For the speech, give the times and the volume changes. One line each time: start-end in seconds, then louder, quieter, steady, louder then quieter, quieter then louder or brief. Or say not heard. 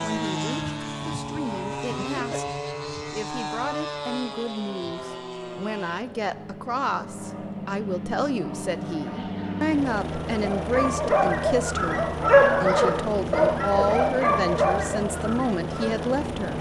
0.0-16.5 louder.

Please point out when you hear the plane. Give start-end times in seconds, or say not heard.
0.0-16.5.